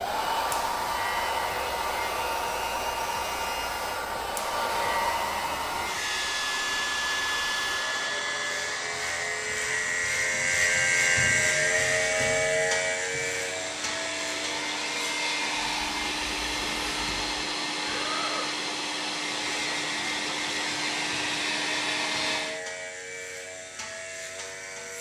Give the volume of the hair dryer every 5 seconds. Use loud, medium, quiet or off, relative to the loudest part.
loud, loud, medium, loud, loud.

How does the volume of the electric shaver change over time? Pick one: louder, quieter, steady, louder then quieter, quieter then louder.
louder then quieter.